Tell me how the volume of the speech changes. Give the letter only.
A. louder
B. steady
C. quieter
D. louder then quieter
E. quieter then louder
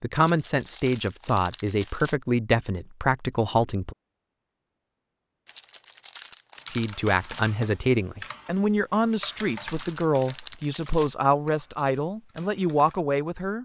B.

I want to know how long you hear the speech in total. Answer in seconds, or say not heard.
11 s.